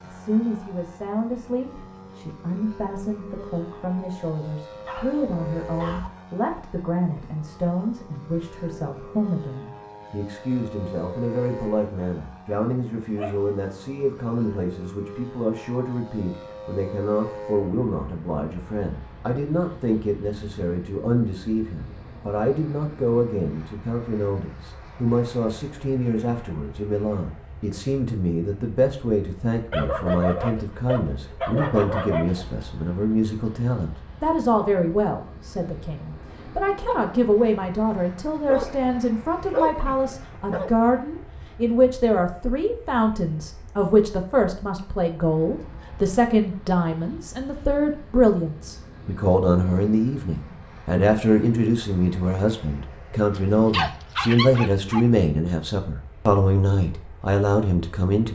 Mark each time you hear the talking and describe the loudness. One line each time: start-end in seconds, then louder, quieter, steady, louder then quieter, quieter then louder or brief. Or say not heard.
0.0-58.3 louder.